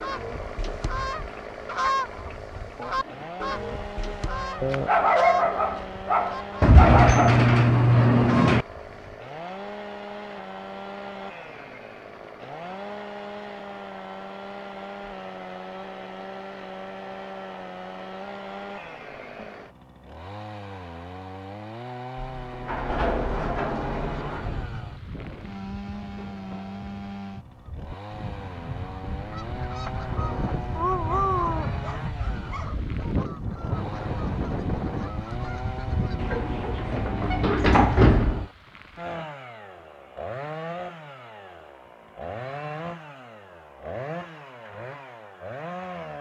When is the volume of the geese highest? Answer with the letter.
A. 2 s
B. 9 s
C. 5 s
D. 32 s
A.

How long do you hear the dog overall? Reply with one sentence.
The dog can be heard for 5 seconds in total.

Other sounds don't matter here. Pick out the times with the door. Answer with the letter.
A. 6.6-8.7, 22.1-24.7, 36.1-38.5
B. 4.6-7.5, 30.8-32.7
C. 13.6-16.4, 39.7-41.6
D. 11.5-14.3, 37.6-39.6
A.